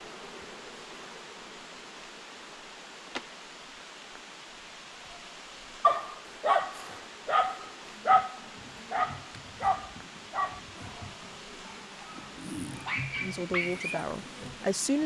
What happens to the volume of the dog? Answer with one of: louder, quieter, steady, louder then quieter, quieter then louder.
quieter then louder.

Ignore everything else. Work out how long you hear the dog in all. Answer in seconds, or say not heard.
8 s.